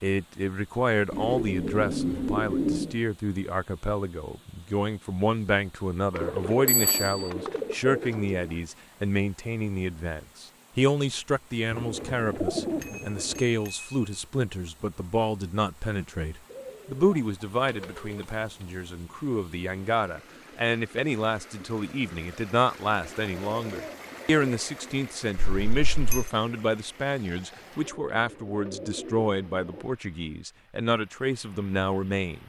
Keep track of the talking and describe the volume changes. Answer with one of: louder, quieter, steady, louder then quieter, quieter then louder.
steady.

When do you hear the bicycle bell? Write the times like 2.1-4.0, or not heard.
6.7-7.3, 12.8-13.9, 25.4-26.3.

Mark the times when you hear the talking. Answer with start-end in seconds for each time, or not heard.
0.0-32.4.